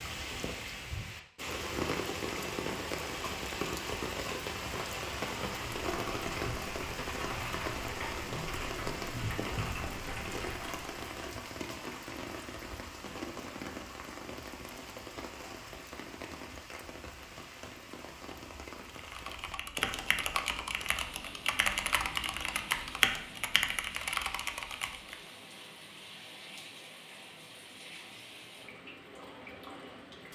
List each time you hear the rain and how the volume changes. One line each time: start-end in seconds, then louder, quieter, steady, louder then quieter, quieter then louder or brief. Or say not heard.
0.0-30.3 quieter.